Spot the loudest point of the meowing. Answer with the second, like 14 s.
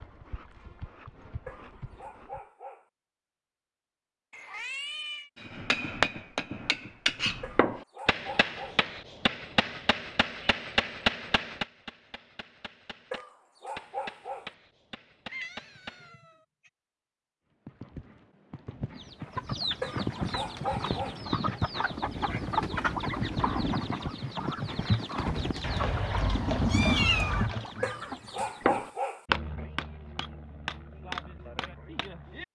27 s.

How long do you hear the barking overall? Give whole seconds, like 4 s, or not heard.
7 s.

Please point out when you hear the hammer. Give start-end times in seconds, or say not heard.
5.3-16.1, 28.6-32.5.